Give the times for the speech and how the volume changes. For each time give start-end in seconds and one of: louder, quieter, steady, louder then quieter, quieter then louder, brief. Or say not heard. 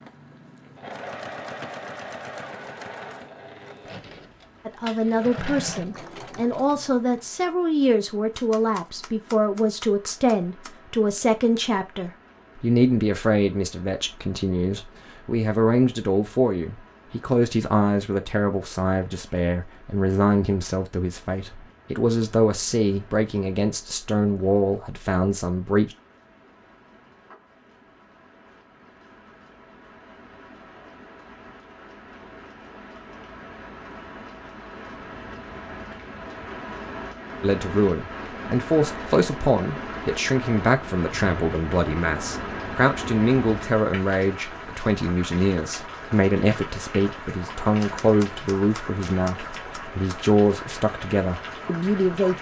4.7-25.9 steady
37.4-52.3 steady.